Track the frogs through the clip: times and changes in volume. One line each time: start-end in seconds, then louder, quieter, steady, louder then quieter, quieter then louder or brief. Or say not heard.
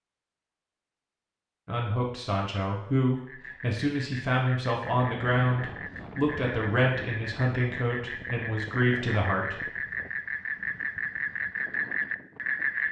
3.1-12.8 louder.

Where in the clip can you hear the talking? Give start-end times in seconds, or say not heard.
1.6-9.6.